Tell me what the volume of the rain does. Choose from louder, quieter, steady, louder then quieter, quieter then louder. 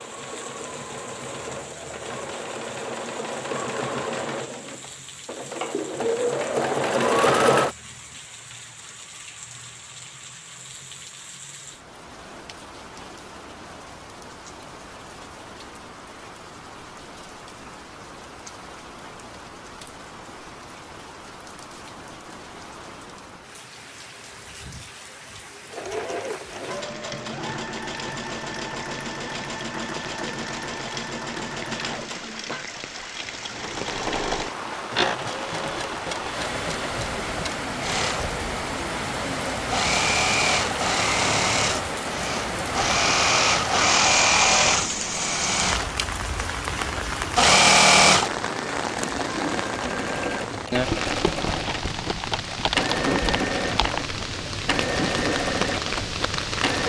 louder.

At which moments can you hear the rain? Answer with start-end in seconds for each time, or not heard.
0.0-56.8.